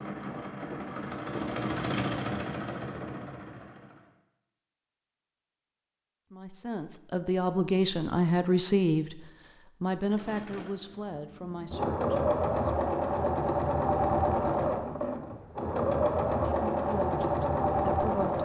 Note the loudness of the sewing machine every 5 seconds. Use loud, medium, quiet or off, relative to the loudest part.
medium, off, loud, loud.